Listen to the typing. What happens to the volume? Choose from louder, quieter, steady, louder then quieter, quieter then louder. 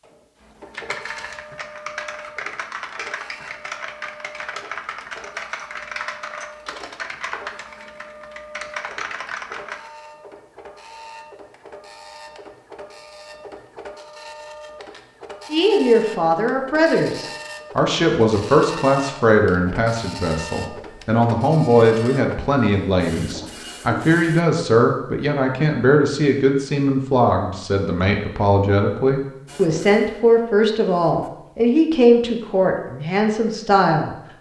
steady.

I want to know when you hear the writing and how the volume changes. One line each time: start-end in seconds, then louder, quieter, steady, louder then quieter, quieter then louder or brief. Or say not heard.
not heard.